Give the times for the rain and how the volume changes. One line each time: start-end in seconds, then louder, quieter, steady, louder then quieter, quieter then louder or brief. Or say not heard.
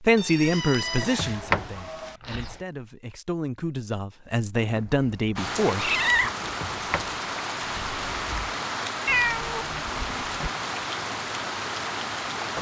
5.3-12.5 steady.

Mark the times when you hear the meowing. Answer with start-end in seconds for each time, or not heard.
0.1-2.1, 4.6-6.5, 9.1-10.5.